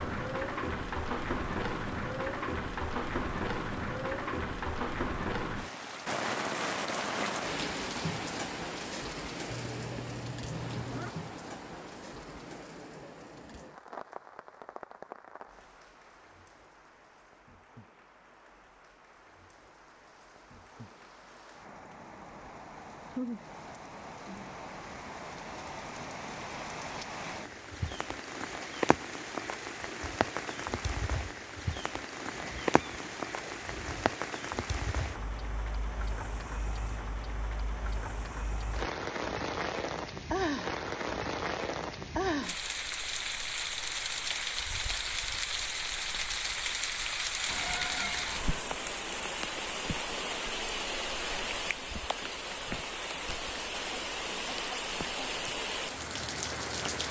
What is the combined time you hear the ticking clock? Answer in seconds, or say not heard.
not heard.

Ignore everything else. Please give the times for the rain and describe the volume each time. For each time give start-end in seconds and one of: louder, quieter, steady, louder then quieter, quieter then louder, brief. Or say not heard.
0.0-57.0 quieter then louder.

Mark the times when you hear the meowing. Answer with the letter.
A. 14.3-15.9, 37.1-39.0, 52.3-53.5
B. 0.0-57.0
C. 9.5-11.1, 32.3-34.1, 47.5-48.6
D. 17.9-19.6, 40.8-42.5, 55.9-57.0
C.